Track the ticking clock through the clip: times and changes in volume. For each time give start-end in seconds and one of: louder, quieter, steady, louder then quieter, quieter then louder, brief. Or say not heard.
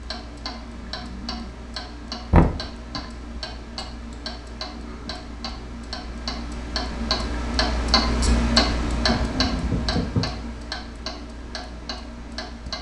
0.0-12.7 louder then quieter.